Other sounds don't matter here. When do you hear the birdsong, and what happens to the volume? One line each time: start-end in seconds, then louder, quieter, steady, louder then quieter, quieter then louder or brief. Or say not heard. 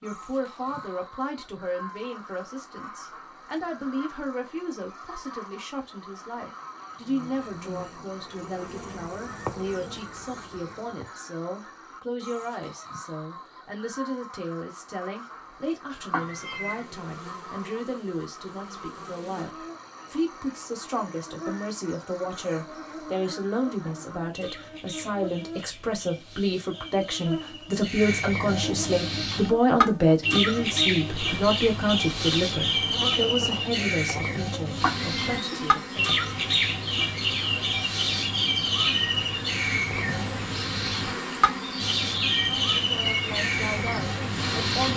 0.0-44.9 louder.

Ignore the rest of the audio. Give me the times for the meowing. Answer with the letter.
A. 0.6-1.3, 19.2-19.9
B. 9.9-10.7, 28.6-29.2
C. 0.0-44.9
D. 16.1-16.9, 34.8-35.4
D.